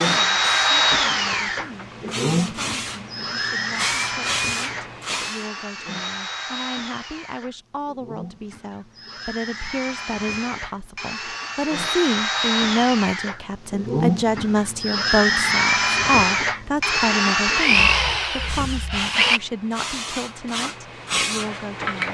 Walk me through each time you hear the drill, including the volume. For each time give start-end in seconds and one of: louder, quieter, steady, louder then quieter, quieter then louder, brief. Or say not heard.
0.0-19.4 quieter then louder.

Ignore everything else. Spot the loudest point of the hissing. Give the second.
22 s.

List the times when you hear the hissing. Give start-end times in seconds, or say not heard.
0.2-5.5, 18.4-22.1.